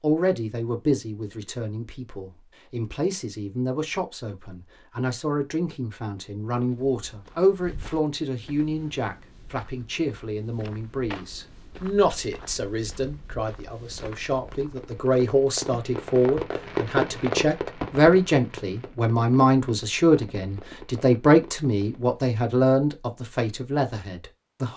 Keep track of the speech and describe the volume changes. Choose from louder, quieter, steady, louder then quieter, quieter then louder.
louder.